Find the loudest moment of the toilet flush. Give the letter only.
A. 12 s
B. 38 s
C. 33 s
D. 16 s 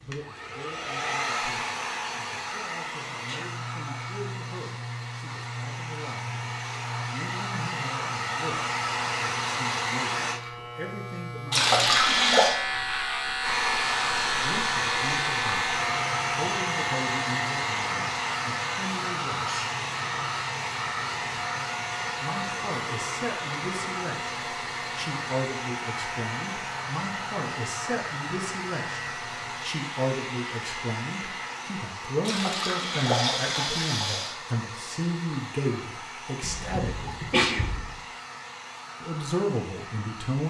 A.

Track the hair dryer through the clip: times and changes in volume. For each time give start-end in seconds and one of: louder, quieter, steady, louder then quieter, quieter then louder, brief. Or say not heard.
0.0-10.4 quieter then louder
13.4-40.4 quieter.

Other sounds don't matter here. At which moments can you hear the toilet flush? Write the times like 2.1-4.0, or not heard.
11.5-12.6, 32.2-34.4.